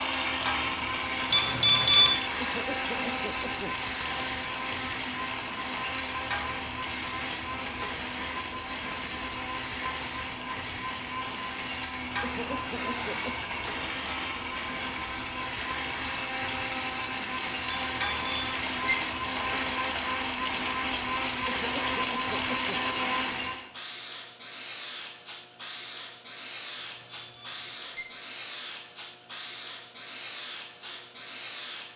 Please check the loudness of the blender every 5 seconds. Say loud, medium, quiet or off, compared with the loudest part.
loud, medium, medium, loud, loud, off, off.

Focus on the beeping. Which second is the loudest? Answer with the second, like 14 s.
2 s.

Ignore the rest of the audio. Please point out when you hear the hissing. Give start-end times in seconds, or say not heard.
0.0-31.9.